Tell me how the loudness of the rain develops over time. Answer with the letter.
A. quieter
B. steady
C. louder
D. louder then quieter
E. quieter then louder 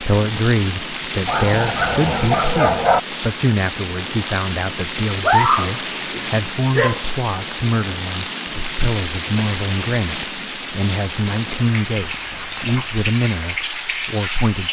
B.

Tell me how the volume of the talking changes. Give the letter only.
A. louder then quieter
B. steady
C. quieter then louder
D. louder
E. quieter
B.